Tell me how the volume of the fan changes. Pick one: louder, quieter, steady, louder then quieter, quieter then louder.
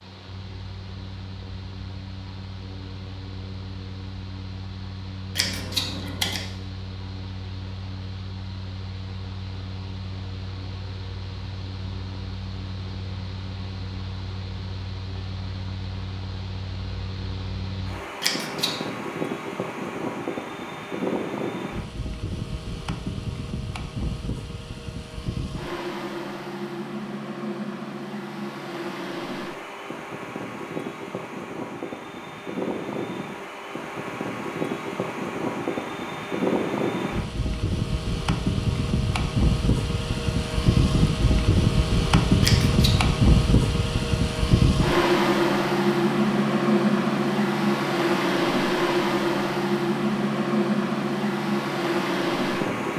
louder.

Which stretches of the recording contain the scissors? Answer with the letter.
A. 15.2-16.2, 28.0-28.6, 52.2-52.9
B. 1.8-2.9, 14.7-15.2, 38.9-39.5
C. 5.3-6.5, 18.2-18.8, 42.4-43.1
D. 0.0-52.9
C.